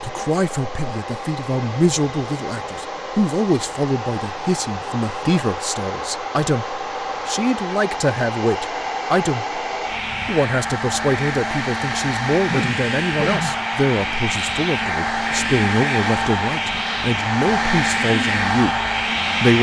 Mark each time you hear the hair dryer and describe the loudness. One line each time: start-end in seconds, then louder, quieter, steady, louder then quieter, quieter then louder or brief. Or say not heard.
0.0-19.5 louder.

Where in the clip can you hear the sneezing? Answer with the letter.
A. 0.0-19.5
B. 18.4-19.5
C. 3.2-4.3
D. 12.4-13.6
D.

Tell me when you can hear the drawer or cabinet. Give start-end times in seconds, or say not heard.
not heard.